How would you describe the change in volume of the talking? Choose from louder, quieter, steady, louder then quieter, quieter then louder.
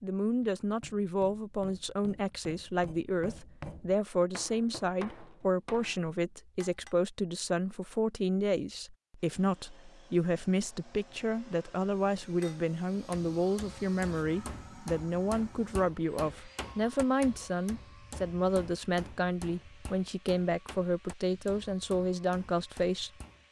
steady.